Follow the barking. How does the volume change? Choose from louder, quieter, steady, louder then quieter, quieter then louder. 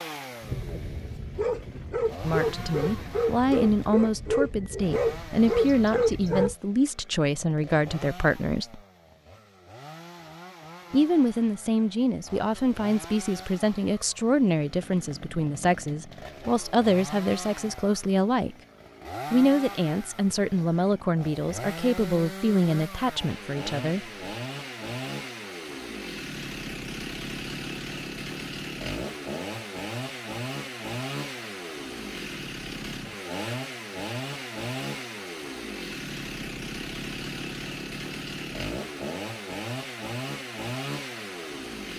louder.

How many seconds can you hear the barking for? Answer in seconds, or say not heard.
6 s.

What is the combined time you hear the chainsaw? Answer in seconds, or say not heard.
42 s.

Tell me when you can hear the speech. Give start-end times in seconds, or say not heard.
2.2-8.8, 10.9-18.6, 19.3-24.1.